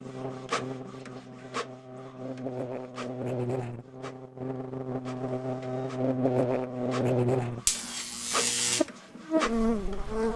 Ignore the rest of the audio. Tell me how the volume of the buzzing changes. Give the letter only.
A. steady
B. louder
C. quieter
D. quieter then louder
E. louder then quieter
B.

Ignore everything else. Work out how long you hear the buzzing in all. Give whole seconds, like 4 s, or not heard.
10 s.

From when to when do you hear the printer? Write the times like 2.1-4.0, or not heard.
0.0-10.3.